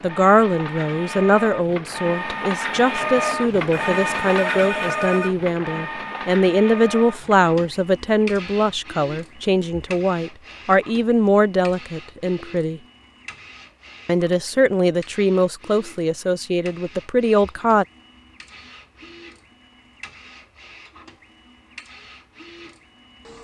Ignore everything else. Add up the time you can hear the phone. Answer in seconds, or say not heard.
2 s.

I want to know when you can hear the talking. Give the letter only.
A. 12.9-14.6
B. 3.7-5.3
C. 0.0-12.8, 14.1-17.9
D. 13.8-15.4
C.